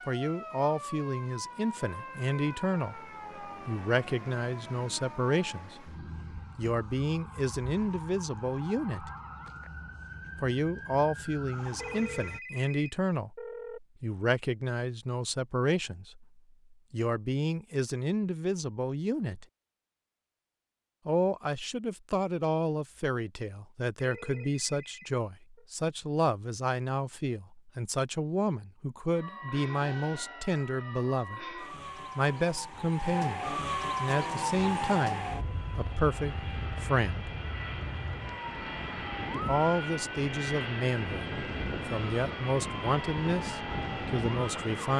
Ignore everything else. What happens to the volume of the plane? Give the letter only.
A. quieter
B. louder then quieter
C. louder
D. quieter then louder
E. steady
C.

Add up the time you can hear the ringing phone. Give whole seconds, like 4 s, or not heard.
4 s.